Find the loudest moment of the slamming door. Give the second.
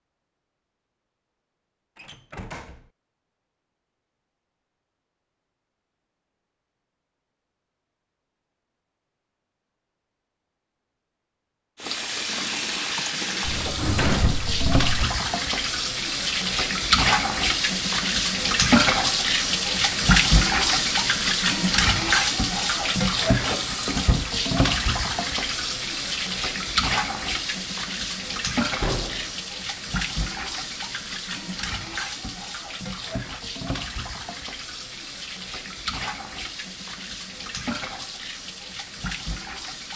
14 s.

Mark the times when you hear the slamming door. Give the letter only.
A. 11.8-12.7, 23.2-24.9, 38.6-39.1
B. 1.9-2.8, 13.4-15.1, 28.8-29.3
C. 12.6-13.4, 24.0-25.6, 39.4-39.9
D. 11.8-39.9
B.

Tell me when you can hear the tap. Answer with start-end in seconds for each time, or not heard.
11.8-39.9.